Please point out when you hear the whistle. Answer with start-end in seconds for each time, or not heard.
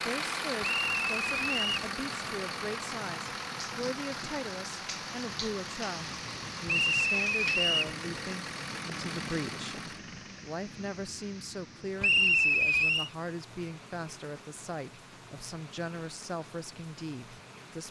0.6-1.9, 6.7-8.0, 12.0-13.1.